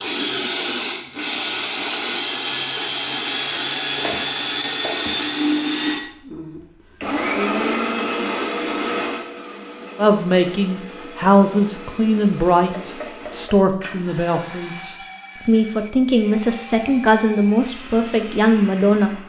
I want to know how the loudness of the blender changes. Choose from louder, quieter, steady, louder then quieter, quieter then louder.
quieter.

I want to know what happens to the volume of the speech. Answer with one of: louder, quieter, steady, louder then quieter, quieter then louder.
quieter then louder.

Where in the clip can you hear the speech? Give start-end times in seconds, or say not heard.
9.9-19.1.